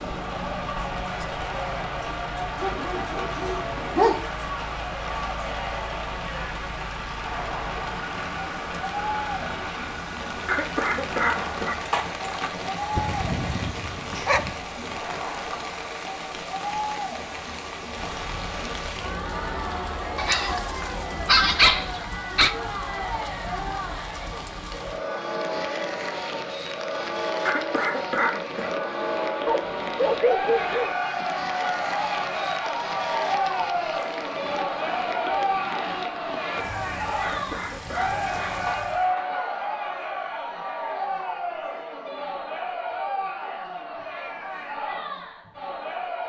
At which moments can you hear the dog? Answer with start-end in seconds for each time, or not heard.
2.6-4.2, 12.9-14.6, 20.1-20.6, 21.2-22.6, 29.4-30.9, 38.8-39.6.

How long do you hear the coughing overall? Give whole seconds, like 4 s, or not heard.
5 s.